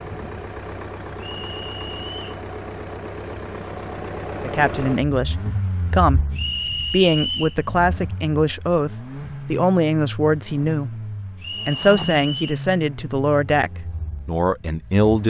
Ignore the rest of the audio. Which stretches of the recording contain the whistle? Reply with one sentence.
The whistle can be heard from 1.1 to 2.4 s, from 6.3 to 7.6 s and from 11.4 to 12.6 s.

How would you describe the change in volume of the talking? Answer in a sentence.
The loudness of the talking stays about the same.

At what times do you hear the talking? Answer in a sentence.
You can hear the talking from 4.4 to 10.9 s and from 11.7 to 15.2 s.